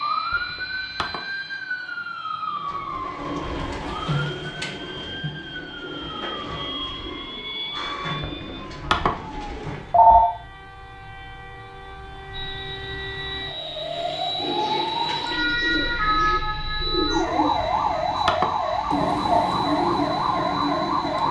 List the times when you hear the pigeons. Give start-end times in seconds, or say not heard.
2.5-10.1, 14.3-21.2.